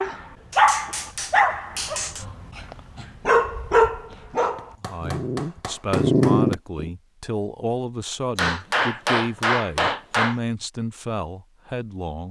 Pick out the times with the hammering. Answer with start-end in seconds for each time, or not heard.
0.5-2.2, 4.5-6.5, 8.3-10.4.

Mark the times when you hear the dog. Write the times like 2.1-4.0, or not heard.
0.0-6.9.